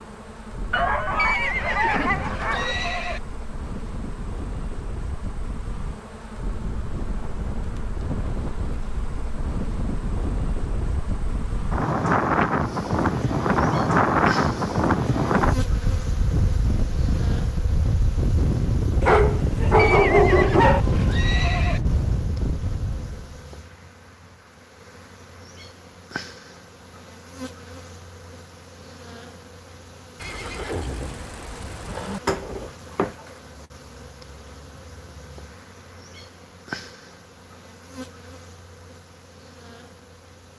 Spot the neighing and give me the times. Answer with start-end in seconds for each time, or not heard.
1.1-3.2, 19.8-21.8, 30.1-32.2.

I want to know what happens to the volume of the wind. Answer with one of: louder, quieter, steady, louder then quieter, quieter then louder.
louder.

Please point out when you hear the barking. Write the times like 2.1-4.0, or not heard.
0.7-2.8, 19.0-20.8, 31.9-33.1.